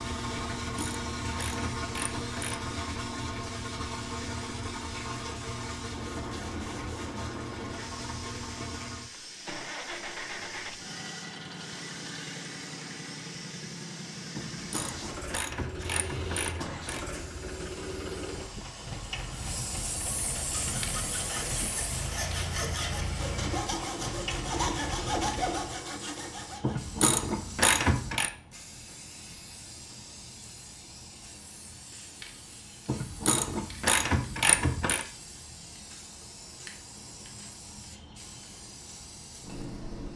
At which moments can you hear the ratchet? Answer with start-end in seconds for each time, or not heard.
0.4-2.8, 14.3-17.1, 26.6-28.3, 32.9-35.0.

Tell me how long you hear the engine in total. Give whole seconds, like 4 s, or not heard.
26 s.